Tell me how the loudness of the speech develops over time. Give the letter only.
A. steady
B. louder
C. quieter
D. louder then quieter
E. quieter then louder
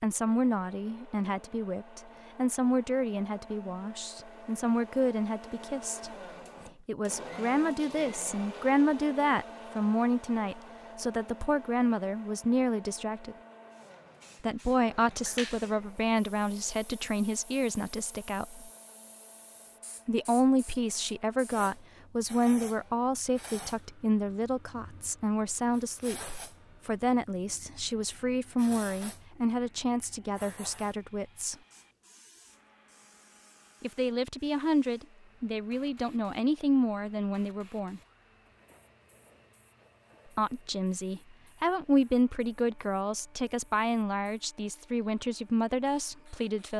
A.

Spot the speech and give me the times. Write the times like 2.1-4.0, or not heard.
0.0-13.3, 14.4-18.7, 20.1-31.6, 33.8-38.0, 40.4-46.7.